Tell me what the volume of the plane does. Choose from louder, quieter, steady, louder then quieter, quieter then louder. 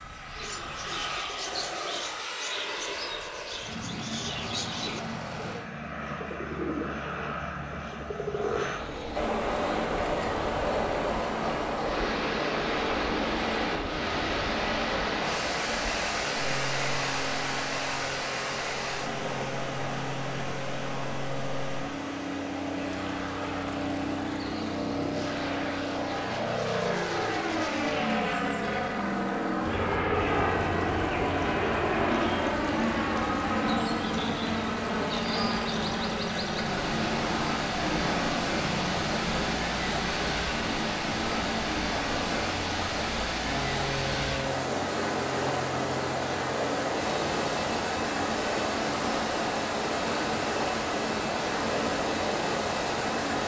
louder then quieter.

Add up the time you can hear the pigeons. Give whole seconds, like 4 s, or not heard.
9 s.